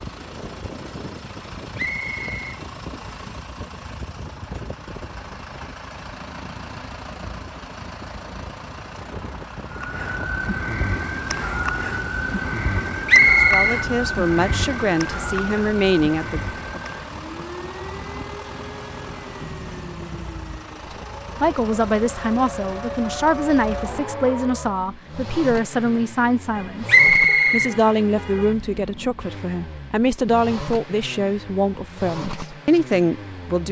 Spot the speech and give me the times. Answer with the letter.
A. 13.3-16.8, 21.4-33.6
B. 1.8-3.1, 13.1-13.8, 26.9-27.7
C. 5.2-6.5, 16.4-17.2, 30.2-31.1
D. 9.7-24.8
A.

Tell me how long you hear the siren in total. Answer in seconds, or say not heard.
15 s.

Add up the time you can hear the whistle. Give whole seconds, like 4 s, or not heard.
3 s.